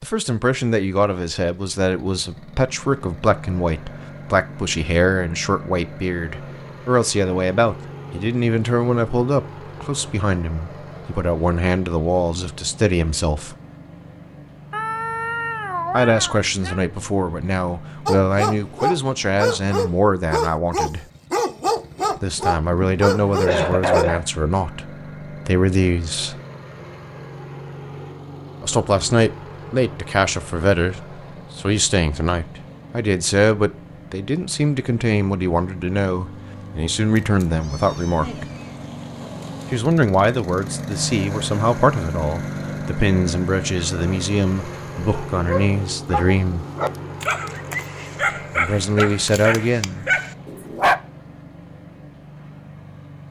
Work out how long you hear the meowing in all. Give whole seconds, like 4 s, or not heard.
4 s.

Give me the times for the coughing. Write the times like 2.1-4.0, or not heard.
22.7-24.2.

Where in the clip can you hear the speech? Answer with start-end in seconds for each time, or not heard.
0.0-13.6, 15.9-21.1, 22.2-26.4, 28.6-38.5, 39.7-46.6, 48.5-50.0.